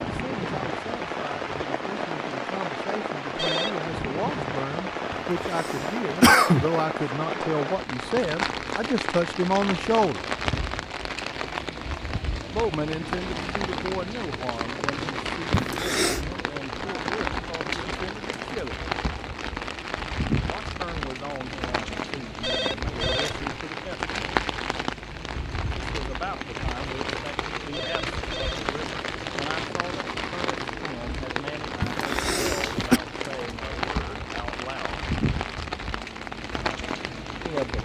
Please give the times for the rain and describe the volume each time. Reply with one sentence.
You can hear the rain from 0.0 to 37.8 s, at a steady volume.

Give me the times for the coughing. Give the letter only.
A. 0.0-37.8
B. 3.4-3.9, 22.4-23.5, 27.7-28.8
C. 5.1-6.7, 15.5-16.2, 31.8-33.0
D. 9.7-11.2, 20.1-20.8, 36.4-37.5
C.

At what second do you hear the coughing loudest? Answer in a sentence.
The volume of the coughing peaks at 6 seconds.